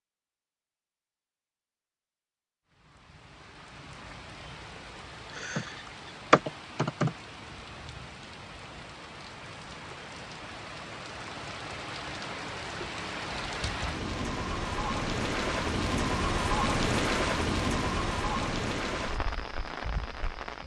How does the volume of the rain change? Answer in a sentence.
The volume of the rain goes up.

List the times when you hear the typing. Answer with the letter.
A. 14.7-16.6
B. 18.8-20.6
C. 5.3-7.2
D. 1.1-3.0
C.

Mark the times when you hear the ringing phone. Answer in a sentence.
You can't hear the ringing phone here.